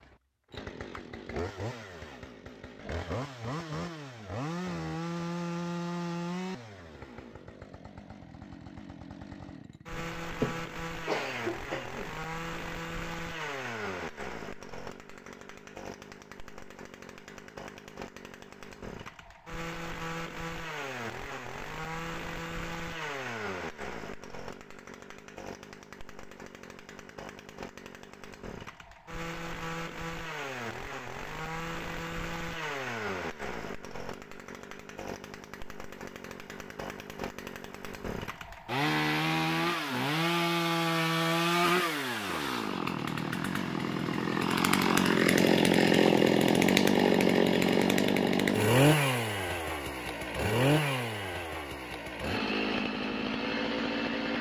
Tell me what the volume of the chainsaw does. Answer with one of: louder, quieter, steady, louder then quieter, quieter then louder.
louder.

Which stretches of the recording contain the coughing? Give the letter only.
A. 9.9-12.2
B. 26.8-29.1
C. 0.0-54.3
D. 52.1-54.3
A.